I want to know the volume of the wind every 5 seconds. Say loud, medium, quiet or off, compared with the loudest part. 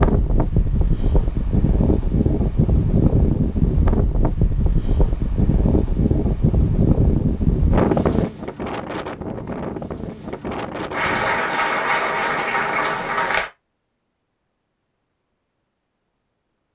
loud, loud, medium, off.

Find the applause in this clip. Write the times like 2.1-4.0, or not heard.
10.9-13.5.